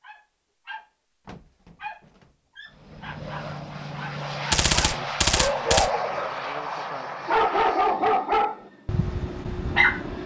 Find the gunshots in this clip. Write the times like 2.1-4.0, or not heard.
4.5-6.0.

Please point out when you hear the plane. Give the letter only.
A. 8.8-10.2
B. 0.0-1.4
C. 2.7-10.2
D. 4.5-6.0
C.